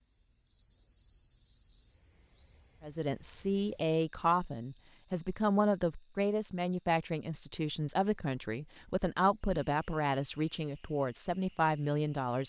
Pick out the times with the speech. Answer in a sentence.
You can hear the speech from 2.8 to 12.4 s.